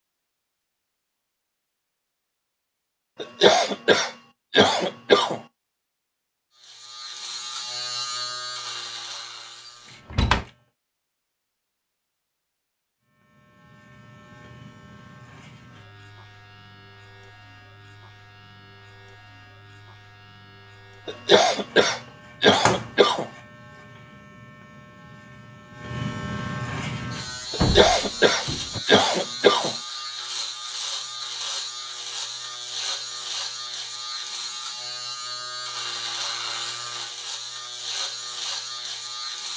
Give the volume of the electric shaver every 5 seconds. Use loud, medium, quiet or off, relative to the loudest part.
off, loud, quiet, quiet, quiet, loud, loud, loud.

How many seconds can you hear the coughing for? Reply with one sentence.
You can hear the coughing for 7 seconds altogether.